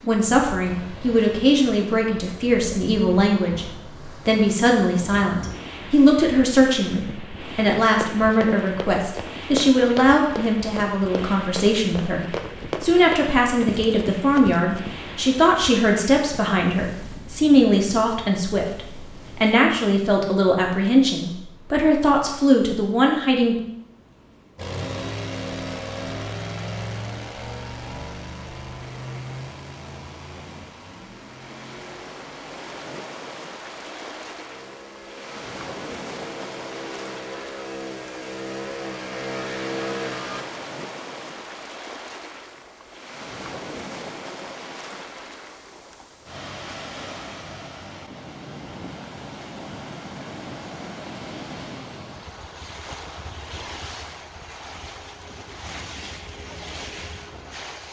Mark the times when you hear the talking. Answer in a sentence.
The talking can be heard from 0.0 to 3.6 s and from 4.2 to 23.6 s.